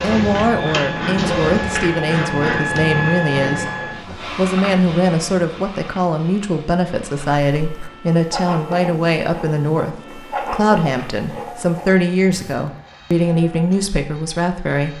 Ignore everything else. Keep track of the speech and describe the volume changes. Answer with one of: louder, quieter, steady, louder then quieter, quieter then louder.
steady.